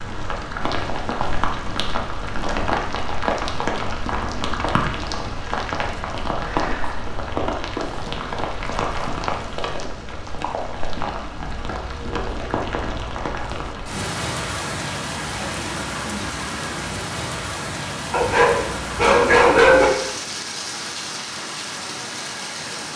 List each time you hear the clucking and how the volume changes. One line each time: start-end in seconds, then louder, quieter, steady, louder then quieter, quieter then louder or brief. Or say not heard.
not heard.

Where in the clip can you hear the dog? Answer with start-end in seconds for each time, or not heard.
18.1-19.9.